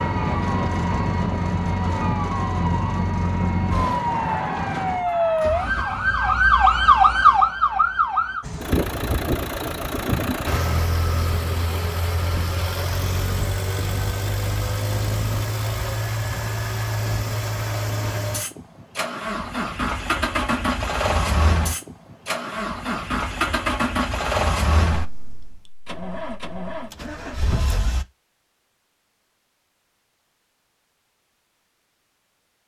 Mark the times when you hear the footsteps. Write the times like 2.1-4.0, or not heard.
not heard.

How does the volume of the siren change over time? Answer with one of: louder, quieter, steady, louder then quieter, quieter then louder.
louder.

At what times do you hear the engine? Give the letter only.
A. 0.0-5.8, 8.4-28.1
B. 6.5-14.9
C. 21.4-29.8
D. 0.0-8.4
A.